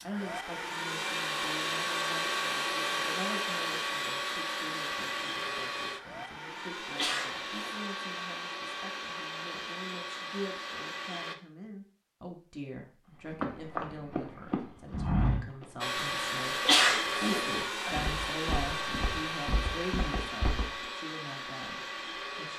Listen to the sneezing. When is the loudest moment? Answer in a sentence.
The volume of the sneezing peaks at 17 seconds.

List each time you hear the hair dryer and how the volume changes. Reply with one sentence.
You can hear the hair dryer from 0.0 to 11.3 s, getting quieter; and from 15.8 to 22.5 s, getting quieter.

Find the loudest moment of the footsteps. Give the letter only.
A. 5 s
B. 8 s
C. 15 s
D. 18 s
C.